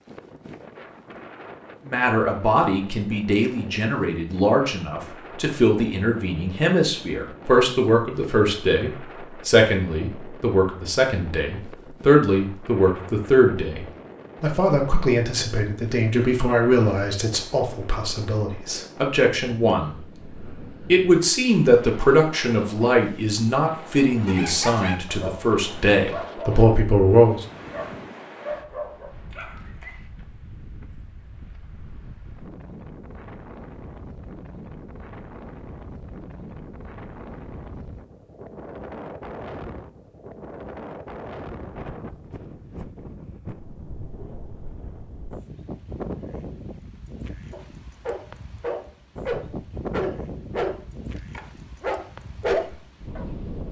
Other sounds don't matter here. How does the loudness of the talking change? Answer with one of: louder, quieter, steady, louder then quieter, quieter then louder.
steady.